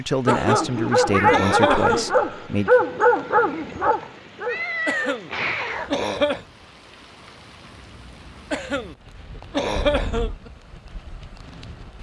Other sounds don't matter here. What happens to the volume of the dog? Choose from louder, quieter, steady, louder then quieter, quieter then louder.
quieter.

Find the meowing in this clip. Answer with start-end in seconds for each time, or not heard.
1.1-1.6, 4.0-6.0, 9.8-10.4.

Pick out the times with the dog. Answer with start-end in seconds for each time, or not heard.
0.2-6.7.